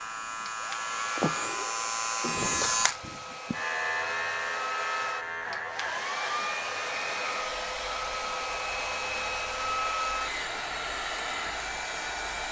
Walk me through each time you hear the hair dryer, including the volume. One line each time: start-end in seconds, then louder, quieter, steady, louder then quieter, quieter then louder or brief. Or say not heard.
0.0-12.4 louder.